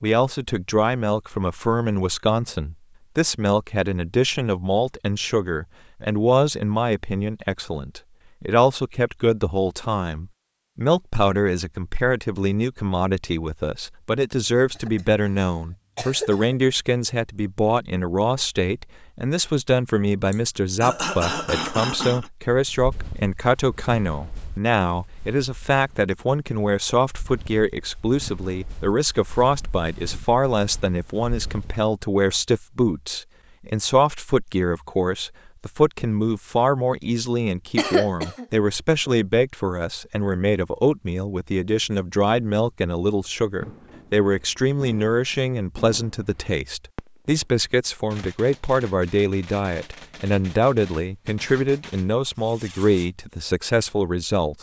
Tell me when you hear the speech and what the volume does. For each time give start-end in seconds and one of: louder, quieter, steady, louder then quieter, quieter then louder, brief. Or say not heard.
0.0-54.5 steady.